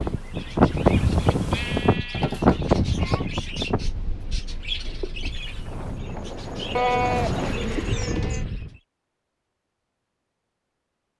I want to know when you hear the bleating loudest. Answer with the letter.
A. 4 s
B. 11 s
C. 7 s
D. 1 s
C.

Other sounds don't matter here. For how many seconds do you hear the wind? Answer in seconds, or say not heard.
9 s.